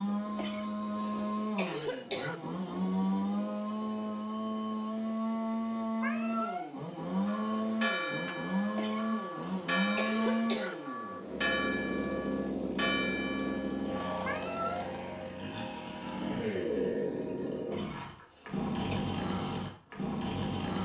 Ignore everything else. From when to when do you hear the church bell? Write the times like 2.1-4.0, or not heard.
7.0-14.3.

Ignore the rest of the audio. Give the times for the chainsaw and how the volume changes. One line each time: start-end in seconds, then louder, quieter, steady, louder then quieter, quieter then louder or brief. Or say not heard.
0.0-20.7 steady.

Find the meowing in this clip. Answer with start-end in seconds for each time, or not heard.
6.0-6.8, 14.2-14.8.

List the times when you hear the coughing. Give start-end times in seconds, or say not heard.
0.3-2.4, 8.8-10.8, 17.7-19.0.